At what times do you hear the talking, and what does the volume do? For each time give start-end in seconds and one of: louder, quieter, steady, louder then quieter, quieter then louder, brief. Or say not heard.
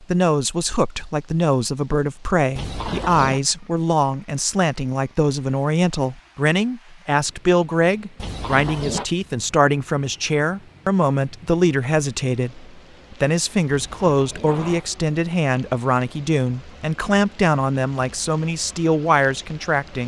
0.0-20.0 steady.